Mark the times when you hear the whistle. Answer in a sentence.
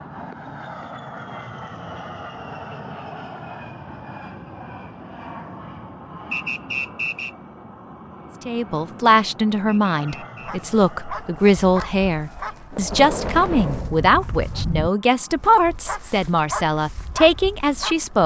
The whistle can be heard from 6.3 to 7.3 s and from 9.7 to 10.7 s.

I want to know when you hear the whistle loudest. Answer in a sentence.
The loudest moment of the whistle is at 7 seconds.